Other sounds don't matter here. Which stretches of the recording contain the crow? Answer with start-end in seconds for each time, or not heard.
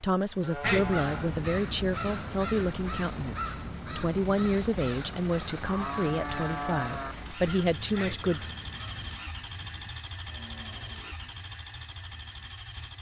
0.6-9.2.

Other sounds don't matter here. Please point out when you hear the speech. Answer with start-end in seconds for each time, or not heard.
0.0-8.6.